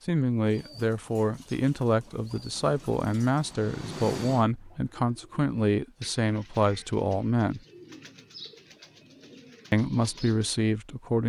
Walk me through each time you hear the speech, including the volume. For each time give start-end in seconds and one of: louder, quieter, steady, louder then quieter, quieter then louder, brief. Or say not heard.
0.1-7.6 steady
9.7-11.2 brief.